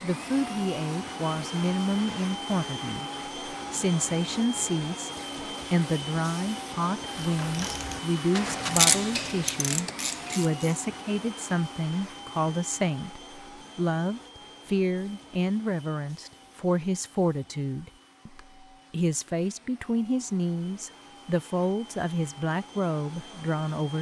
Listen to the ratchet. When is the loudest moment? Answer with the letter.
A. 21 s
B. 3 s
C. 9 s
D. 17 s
C.